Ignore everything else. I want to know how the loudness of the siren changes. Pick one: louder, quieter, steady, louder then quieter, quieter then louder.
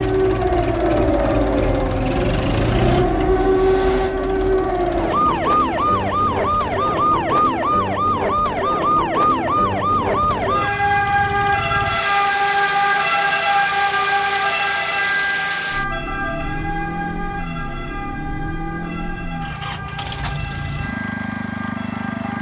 quieter.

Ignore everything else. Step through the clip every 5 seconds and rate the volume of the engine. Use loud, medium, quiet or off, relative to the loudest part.
loud, medium, loud, loud, loud.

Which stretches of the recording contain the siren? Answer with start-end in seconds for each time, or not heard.
0.0-22.3.